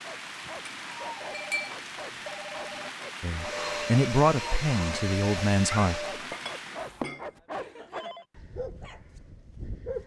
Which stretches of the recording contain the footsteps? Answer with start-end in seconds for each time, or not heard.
not heard.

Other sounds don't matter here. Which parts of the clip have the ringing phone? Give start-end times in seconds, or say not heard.
1.1-2.9, 7.5-8.2.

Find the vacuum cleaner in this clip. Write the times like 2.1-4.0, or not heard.
3.3-6.2.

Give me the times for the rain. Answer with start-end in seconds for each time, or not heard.
0.0-7.1.